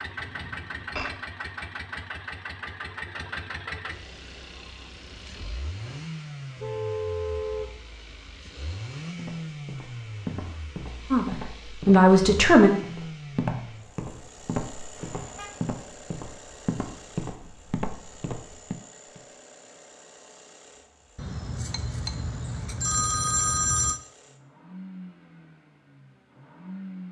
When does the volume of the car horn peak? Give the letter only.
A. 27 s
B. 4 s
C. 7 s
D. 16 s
C.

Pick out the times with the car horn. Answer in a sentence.
You can hear the car horn from 6.5 to 7.8 s and from 14.9 to 15.6 s.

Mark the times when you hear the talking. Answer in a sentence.
You can hear the talking from 11.1 to 12.7 s.